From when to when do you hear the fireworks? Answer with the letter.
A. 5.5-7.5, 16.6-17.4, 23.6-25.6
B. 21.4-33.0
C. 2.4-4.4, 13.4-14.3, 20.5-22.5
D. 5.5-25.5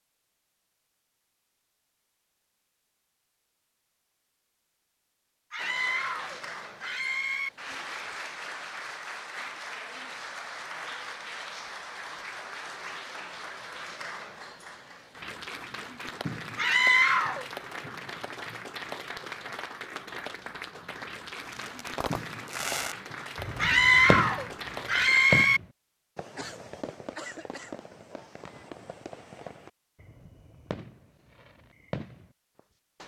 B.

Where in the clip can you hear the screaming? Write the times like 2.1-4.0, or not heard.
5.5-7.5, 16.6-17.4, 23.6-25.6.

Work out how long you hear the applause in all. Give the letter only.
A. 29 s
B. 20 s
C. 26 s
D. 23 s
B.